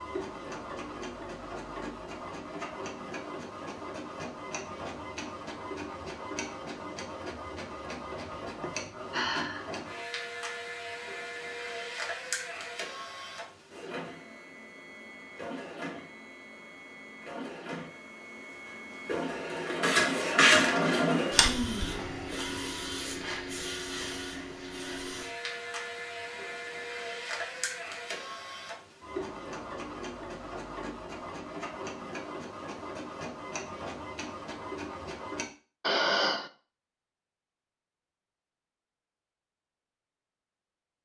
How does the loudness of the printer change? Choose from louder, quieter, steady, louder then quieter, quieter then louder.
louder then quieter.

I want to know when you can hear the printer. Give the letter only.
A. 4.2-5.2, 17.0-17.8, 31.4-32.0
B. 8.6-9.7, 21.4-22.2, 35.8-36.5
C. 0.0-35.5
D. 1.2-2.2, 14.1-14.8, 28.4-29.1
C.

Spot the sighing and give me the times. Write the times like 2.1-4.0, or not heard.
8.6-9.7, 21.4-22.2, 35.8-36.5.